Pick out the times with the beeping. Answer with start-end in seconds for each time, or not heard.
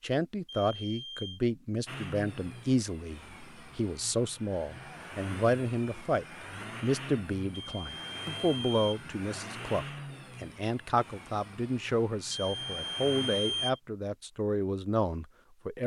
0.5-1.4, 7.5-9.1, 12.3-13.8.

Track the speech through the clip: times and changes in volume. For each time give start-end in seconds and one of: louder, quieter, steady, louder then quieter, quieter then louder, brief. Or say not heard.
0.0-15.8 steady.